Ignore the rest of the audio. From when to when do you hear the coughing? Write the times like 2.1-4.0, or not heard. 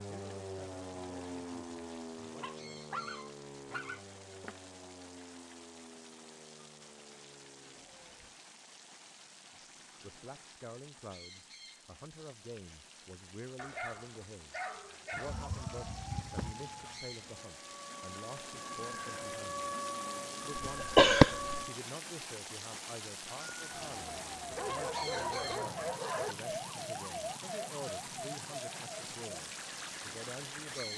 20.6-21.6.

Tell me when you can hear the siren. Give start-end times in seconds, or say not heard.
0.0-8.4, 15.2-21.8, 23.5-30.9.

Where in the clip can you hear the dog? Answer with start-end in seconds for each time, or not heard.
2.4-4.5, 13.6-15.5, 24.6-26.4.